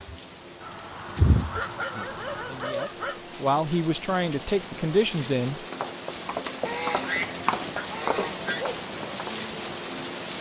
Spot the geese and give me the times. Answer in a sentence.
The geese can be heard from 0.6 to 2.7 s and from 6.6 to 8.7 s.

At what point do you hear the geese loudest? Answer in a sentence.
The loudest moment of the geese is at 7 seconds.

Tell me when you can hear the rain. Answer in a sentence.
You can hear the rain from 0.0 to 10.3 s.